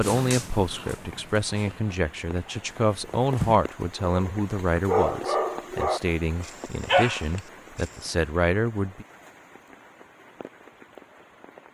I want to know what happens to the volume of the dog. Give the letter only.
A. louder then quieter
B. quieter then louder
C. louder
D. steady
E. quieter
B.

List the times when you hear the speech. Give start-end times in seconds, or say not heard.
0.0-9.1.